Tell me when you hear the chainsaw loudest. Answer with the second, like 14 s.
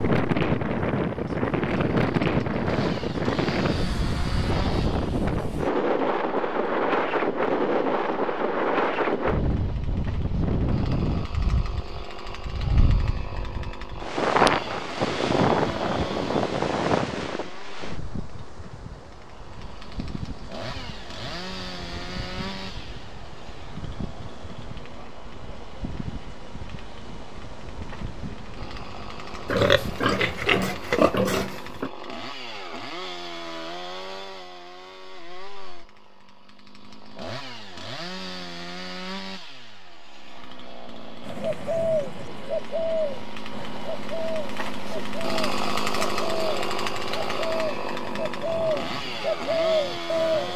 46 s.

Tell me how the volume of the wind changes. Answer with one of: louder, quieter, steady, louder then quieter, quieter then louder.
quieter.